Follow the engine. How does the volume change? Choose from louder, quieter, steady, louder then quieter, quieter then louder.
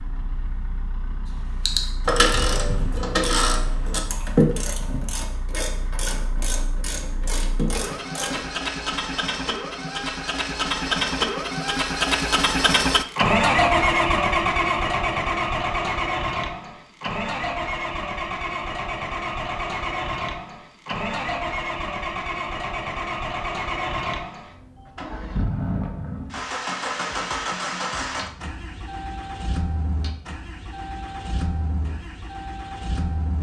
louder then quieter.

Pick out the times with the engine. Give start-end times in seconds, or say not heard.
0.0-33.3.